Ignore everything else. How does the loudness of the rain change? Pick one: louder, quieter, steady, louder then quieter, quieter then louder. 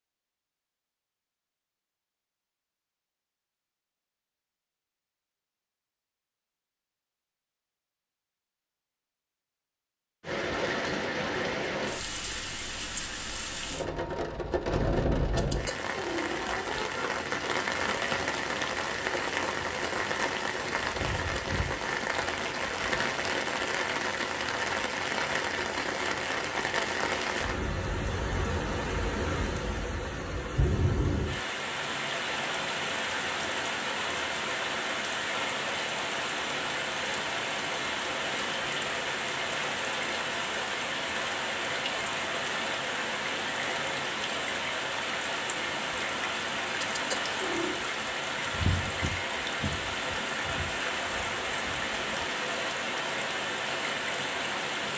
steady.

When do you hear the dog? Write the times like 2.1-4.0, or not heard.
not heard.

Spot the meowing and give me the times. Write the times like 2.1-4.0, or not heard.
15.3-17.1, 46.8-47.8.